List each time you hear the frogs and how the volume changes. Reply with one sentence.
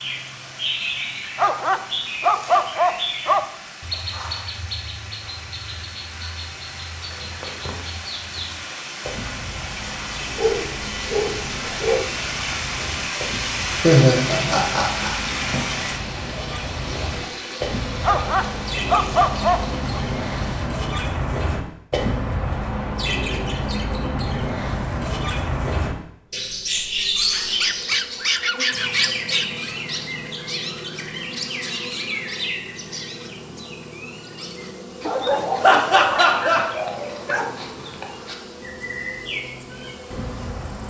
The frogs can't be heard in this clip.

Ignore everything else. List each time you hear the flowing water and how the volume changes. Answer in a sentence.
The flowing water can be heard from 0.0 to 20.7 s, getting louder then quieter.